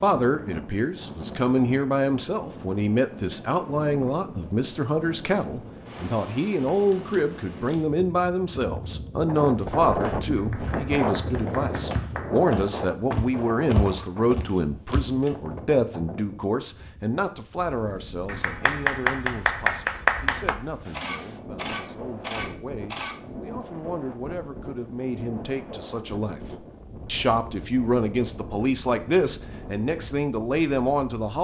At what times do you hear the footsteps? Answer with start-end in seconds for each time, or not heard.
9.8-15.2.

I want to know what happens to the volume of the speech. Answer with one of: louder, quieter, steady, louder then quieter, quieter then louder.
quieter then louder.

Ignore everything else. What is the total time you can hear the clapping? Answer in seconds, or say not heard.
4 s.